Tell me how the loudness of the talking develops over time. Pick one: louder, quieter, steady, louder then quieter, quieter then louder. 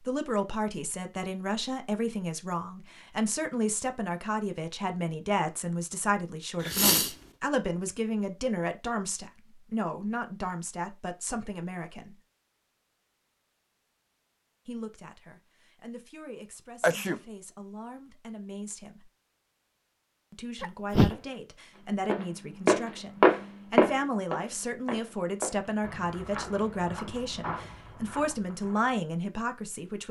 quieter then louder.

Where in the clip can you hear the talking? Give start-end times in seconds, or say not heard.
0.0-12.2, 14.7-19.1, 20.3-30.0.